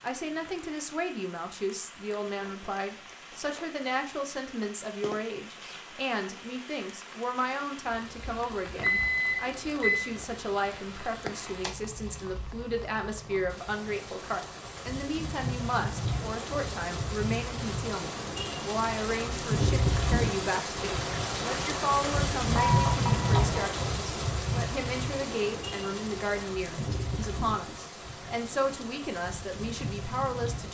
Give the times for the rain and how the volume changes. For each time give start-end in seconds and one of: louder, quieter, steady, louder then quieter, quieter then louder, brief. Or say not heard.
0.0-30.6 louder then quieter.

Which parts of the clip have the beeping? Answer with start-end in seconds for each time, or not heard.
8.8-10.1, 22.6-23.6.